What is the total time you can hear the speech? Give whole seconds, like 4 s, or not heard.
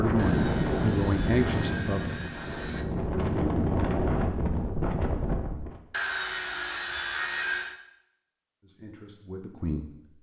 4 s.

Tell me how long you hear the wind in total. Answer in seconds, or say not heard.
6 s.